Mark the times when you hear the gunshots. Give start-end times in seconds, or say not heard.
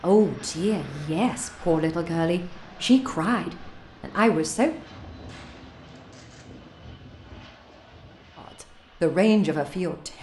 4.7-8.1.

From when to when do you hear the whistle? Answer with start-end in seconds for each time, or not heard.
not heard.